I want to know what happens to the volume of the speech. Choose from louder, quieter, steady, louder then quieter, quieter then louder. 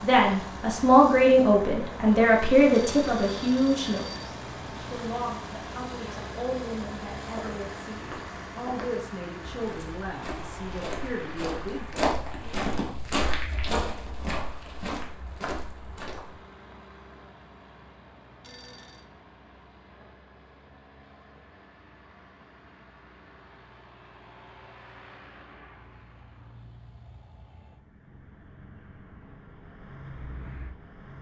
quieter.